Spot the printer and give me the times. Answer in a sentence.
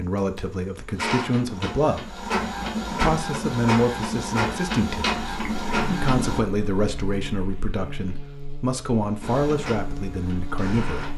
You can hear the printer from 0.0 to 6.4 s and from 9.2 to 11.1 s.